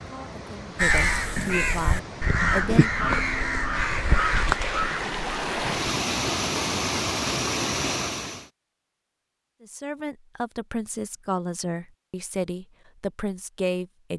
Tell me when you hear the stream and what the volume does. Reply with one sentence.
You can hear the stream from 0.0 to 8.5 s, getting louder.